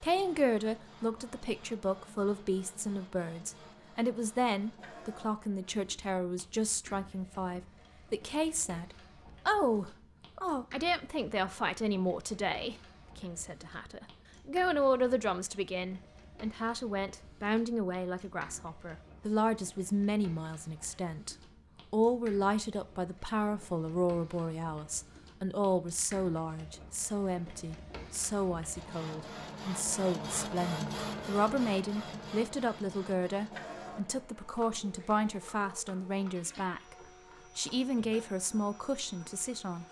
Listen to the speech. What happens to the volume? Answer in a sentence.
The loudness of the speech stays about the same.